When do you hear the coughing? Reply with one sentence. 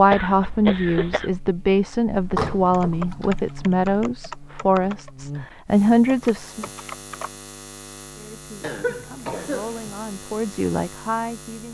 The coughing can be heard from 0.1 to 1.3 s and from 8.6 to 9.9 s.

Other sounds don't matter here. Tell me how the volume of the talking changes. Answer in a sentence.
The volume of the talking goes down, then up.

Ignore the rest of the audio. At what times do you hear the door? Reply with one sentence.
You can hear the door from 2.2 to 3.4 s.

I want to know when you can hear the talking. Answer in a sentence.
You can hear the talking from 0.0 to 6.7 s and from 8.2 to 11.6 s.